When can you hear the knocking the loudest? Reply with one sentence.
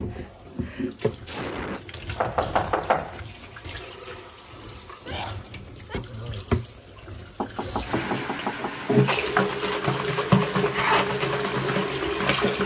The volume of the knocking peaks at 3 seconds.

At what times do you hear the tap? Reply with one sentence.
You can hear the tap from 0.0 to 12.6 s.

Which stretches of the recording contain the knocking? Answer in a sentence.
The knocking can be heard from 2.1 to 3.2 s and from 7.4 to 8.8 s.